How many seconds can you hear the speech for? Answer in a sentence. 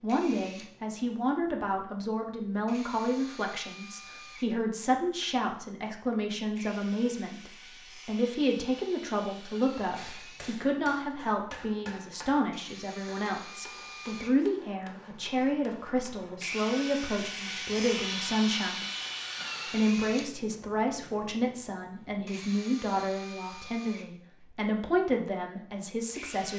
The speech can be heard for 26 seconds in total.